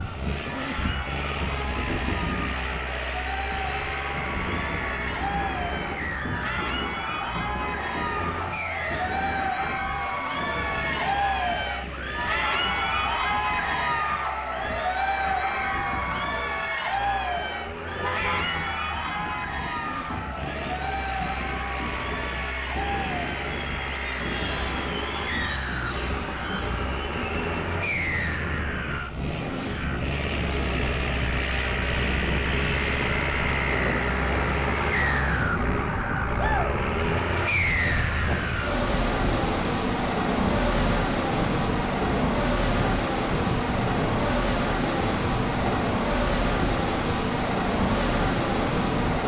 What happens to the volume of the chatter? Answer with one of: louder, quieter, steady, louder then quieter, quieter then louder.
louder then quieter.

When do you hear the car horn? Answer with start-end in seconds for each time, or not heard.
17.9-18.6.